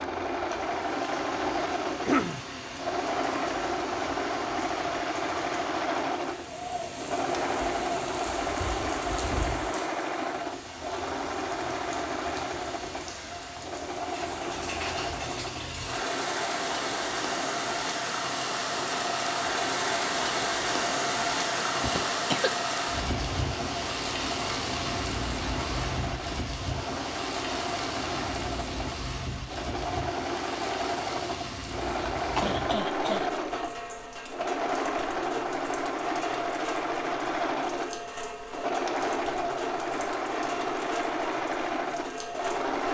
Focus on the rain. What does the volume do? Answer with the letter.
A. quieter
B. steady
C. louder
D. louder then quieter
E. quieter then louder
D.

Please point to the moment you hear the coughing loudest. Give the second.
2 s.